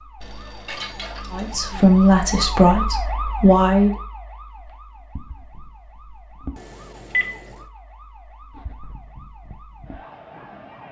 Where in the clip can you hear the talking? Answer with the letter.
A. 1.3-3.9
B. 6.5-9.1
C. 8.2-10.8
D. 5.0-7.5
A.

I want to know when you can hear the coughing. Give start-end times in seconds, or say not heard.
not heard.